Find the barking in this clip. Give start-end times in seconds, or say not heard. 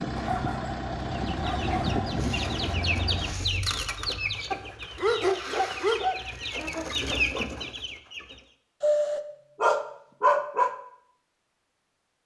0.1-2.1, 4.5-6.3, 8.8-10.8.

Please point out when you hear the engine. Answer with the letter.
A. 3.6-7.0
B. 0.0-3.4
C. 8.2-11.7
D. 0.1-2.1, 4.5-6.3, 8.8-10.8
B.